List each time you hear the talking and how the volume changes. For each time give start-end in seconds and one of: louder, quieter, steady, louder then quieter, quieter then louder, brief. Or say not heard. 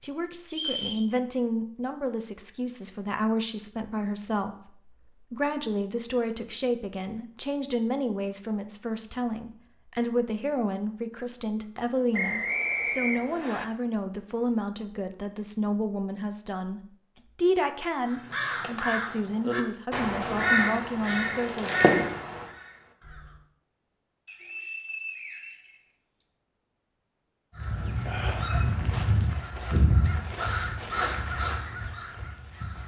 0.0-21.7 steady.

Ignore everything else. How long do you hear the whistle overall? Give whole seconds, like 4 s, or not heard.
4 s.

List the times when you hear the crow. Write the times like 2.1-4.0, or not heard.
18.1-23.4, 27.6-32.8.